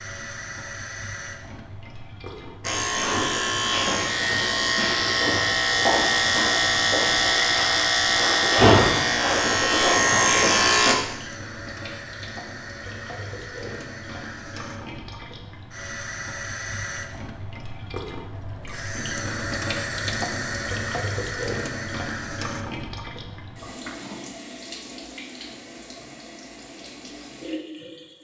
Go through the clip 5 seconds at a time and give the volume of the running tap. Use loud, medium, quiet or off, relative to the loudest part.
medium, medium, medium, loud, loud, medium.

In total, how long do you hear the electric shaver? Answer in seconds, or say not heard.
8 s.